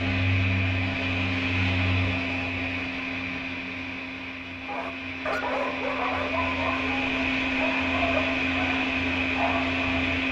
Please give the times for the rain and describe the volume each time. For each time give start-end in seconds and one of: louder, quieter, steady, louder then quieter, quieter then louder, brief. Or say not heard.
not heard.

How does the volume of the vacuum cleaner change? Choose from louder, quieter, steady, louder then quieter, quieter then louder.
quieter then louder.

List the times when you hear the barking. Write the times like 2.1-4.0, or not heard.
4.7-10.1.